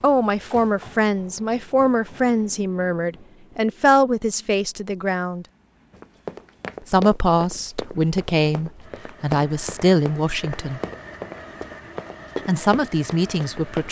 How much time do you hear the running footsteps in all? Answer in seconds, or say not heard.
8 s.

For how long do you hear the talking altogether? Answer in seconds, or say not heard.
11 s.